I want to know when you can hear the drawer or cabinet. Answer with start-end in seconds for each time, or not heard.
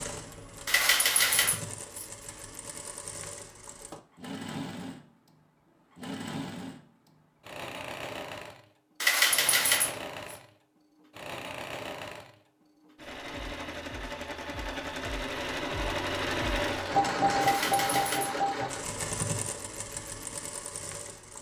not heard.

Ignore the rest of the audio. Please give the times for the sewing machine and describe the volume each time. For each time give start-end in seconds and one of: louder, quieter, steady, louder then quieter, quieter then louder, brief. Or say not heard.
0.0-21.3 louder.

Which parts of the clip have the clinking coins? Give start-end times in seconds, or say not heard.
0.7-2.0, 9.0-10.3, 17.4-18.4.